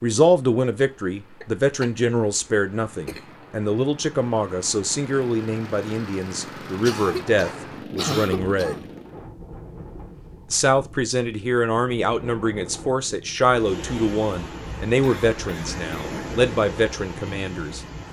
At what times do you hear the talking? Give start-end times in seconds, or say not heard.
0.0-8.8, 10.5-17.8.